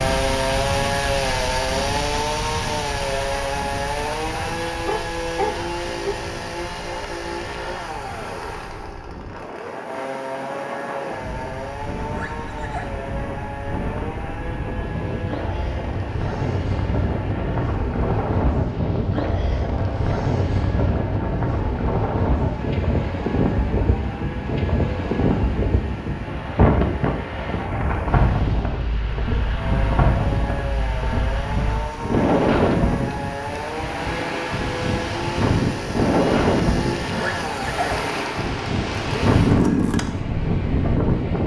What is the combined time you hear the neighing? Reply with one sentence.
The neighing can be heard for 2 seconds in total.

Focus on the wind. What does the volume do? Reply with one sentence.
The loudness of the wind goes up.